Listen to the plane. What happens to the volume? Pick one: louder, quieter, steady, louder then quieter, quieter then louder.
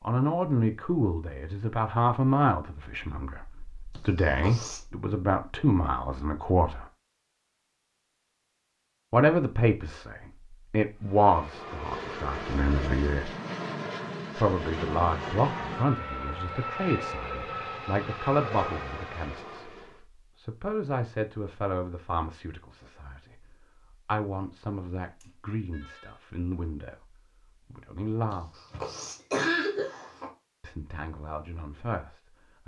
steady.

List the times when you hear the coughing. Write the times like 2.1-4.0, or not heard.
4.0-4.8, 28.3-30.3.